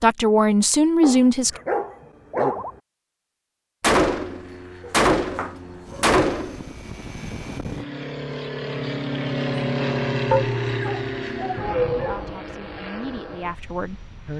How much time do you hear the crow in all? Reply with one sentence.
You can't hear the crow here.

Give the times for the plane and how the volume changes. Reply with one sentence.
You can hear the plane from 4.1 to 14.3 s, getting louder then quieter.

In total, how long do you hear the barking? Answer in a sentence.
The barking can be heard for 5 seconds in total.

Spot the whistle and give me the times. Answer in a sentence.
The whistle can't be heard in this clip.